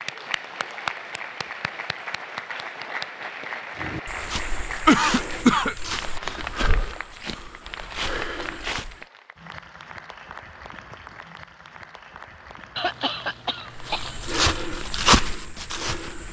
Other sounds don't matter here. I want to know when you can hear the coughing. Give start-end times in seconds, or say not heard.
4.8-5.8, 12.8-14.7.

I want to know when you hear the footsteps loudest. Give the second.
15 s.